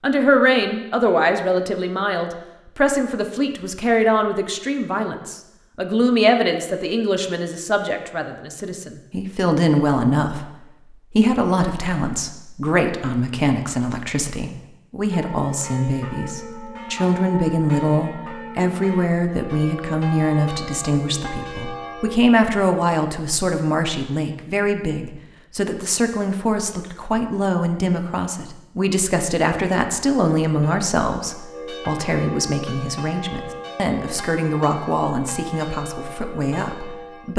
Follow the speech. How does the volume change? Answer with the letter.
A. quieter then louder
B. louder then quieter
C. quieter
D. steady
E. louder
D.